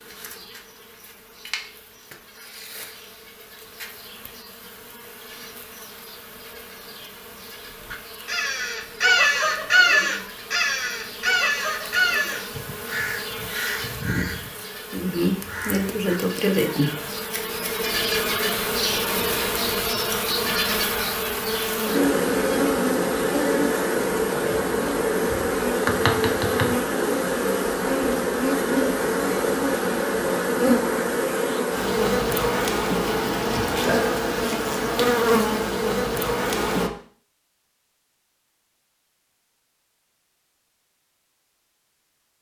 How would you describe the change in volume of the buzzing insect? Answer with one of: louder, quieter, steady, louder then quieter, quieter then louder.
louder.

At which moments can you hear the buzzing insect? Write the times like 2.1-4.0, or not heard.
0.0-36.9.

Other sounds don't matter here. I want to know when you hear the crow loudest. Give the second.
10 s.